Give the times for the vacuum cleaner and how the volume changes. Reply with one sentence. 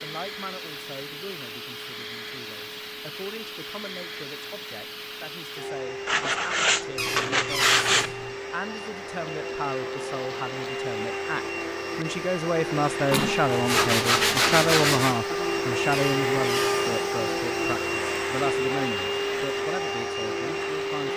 You can hear the vacuum cleaner from 0.0 to 21.1 s, getting louder.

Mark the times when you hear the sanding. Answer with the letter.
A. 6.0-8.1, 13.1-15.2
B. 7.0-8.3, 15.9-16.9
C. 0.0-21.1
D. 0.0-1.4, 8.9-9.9
A.